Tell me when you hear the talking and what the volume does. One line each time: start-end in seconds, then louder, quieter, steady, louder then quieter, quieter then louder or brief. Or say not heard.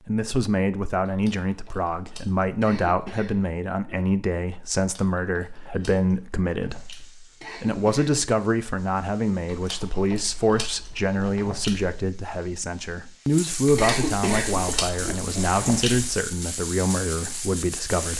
0.1-18.1 steady.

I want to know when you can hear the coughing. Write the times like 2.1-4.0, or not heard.
2.6-4.0, 7.4-8.2, 13.8-15.2.